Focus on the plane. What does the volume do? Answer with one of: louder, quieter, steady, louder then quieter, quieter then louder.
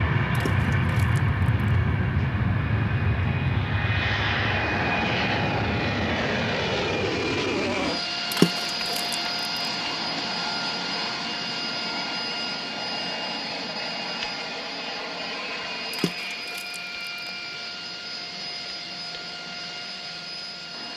quieter.